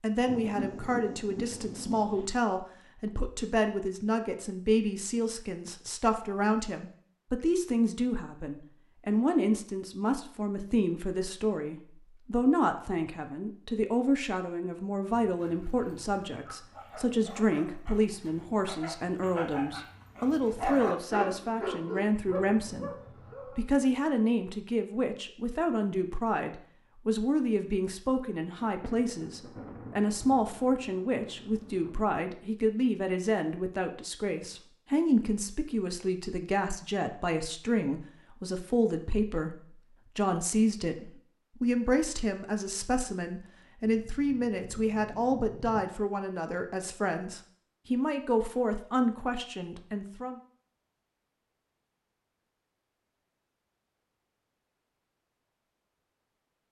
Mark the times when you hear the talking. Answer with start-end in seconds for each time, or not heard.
0.0-50.4.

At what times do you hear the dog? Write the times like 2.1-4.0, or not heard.
15.2-23.6.